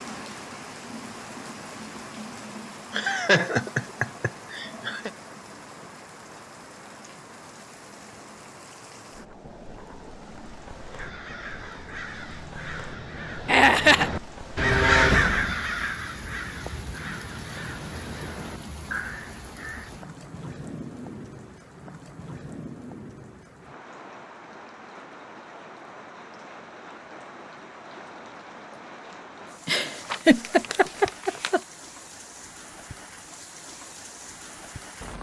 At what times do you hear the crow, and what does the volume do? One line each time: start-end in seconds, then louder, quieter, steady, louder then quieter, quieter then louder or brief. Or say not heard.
10.9-19.9 louder then quieter.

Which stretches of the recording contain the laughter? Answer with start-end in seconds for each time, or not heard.
2.9-5.1, 13.4-14.1, 29.6-31.6.